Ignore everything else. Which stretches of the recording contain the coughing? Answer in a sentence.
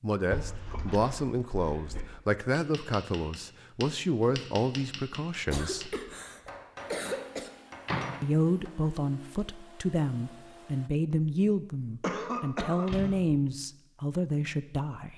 The coughing can be heard from 0.4 to 1.0 s, from 5.5 to 7.5 s and from 12.0 to 13.2 s.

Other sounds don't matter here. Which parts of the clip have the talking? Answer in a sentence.
You can hear the talking from 0.0 to 6.0 s and from 8.2 to 15.1 s.